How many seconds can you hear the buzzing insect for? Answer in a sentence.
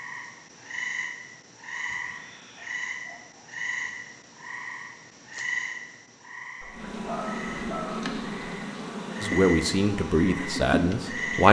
The buzzing insect can be heard for 5 seconds in total.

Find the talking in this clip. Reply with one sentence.
You can hear the talking from 9.2 to 11.4 s.